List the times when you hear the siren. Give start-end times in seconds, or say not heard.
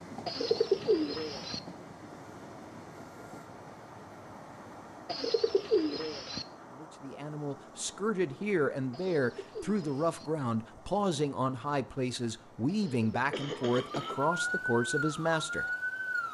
13.7-16.2.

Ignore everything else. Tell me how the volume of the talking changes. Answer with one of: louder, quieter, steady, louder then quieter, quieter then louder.
steady.